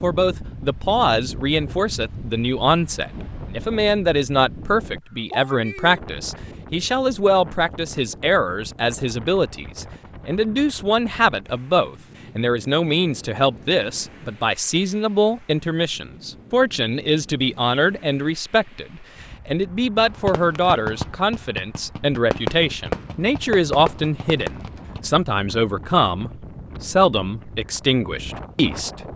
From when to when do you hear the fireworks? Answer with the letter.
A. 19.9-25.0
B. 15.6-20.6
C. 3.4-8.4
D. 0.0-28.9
A.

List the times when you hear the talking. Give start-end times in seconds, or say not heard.
0.0-28.9.